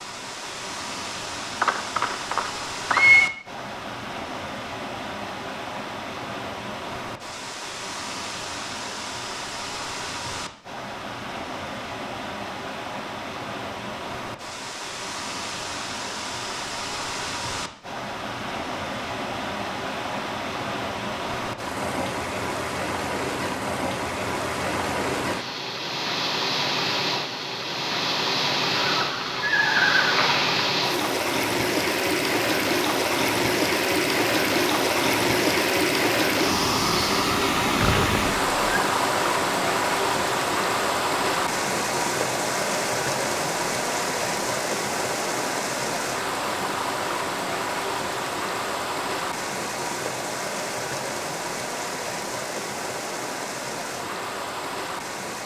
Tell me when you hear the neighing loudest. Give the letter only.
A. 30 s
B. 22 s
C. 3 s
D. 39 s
C.